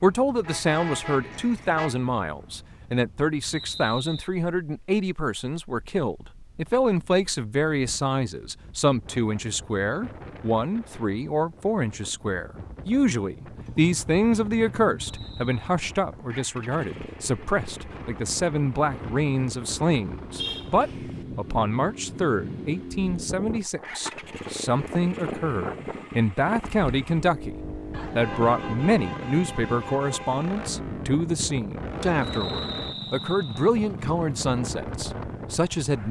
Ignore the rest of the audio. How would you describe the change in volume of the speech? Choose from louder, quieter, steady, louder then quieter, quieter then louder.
steady.